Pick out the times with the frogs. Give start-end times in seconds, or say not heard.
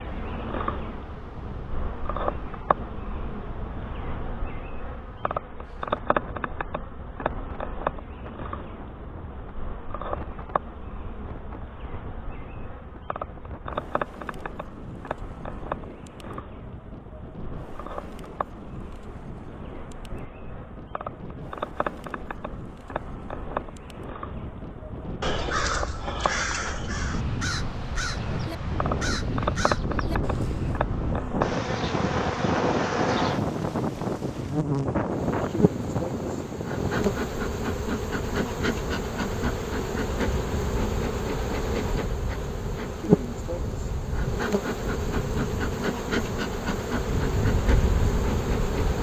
not heard.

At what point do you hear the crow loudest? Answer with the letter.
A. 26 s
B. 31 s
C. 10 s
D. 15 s
A.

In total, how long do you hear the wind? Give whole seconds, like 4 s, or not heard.
49 s.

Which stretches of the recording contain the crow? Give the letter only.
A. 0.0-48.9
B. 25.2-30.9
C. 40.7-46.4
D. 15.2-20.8
B.